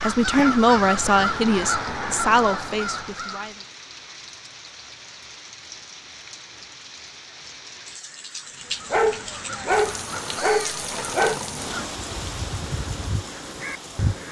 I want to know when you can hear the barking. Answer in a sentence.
You can hear the barking from 8.9 to 11.4 s.